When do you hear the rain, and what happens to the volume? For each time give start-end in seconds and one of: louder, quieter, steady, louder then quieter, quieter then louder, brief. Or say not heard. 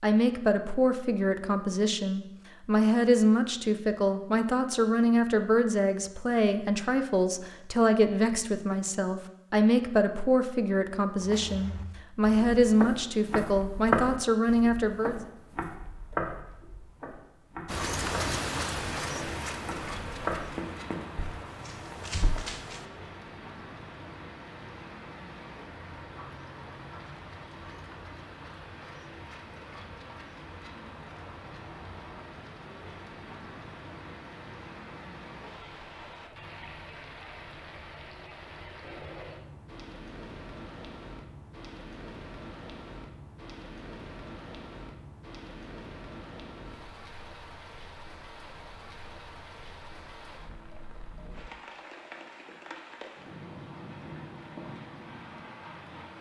17.6-56.1 quieter.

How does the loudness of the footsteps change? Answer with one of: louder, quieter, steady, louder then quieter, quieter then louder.
louder then quieter.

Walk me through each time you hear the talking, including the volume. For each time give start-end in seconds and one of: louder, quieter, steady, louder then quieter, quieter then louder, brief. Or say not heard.
0.0-15.2 steady.